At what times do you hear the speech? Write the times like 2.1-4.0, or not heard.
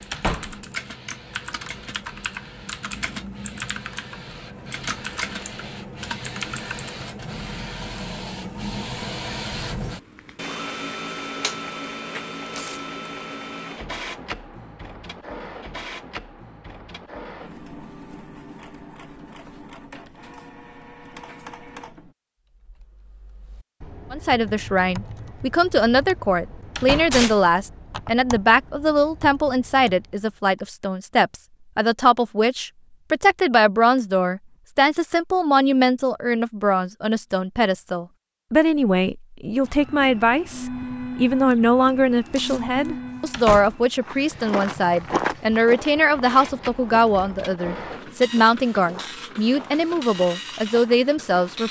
24.1-51.6.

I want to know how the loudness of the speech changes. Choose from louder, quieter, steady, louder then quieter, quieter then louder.
steady.